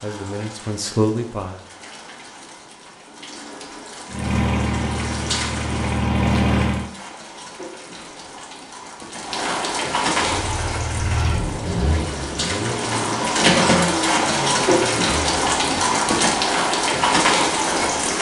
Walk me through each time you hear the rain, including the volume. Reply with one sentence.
The rain can be heard from 0.0 to 18.1 s, getting louder.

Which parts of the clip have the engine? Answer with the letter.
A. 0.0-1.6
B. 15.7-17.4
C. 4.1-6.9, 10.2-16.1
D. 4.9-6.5
C.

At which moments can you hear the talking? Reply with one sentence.
You can hear the talking from 0.0 to 1.6 s.